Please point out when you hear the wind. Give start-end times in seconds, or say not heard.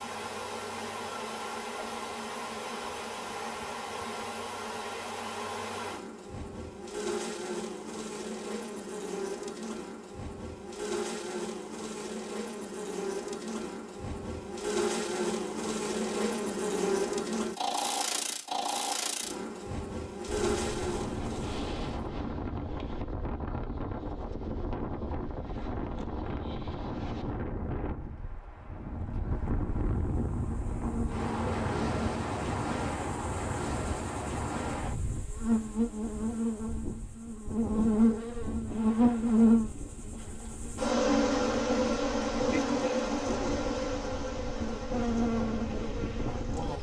20.2-46.7.